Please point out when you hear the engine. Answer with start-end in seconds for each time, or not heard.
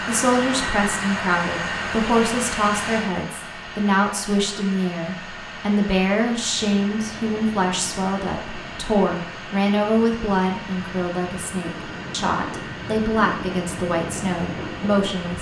0.0-15.3.